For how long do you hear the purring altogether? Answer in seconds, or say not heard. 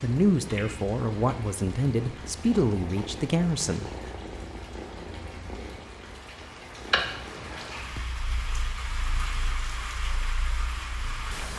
11 s.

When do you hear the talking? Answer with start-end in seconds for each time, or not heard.
0.0-4.1.